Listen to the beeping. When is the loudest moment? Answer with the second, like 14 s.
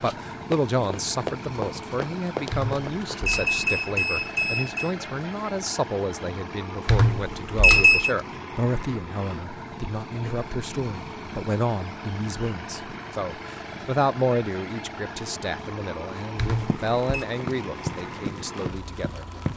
8 s.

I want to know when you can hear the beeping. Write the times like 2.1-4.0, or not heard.
2.5-4.9, 6.8-8.1, 16.4-17.2.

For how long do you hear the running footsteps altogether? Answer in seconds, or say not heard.
6 s.